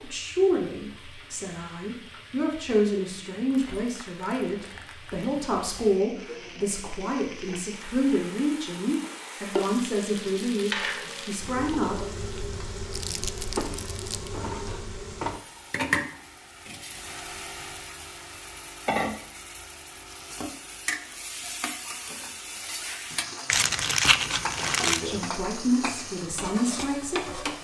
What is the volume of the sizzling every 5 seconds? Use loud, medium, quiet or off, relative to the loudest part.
quiet, medium, loud, loud, loud, loud.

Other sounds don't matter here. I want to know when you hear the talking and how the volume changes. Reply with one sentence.
You can hear the talking from 0.0 to 11.9 s, at a steady volume; and briefly from 25.0 to 27.4 s.